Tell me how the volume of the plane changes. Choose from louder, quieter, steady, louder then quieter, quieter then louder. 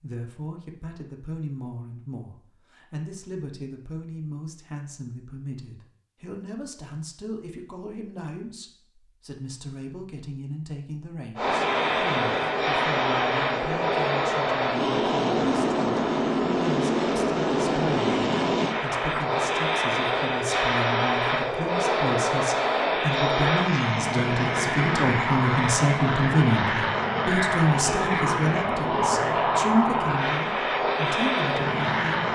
steady.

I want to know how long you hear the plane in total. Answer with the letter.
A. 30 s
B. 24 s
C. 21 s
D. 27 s
C.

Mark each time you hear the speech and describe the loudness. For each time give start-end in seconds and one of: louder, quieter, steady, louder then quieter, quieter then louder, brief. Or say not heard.
0.0-32.3 louder.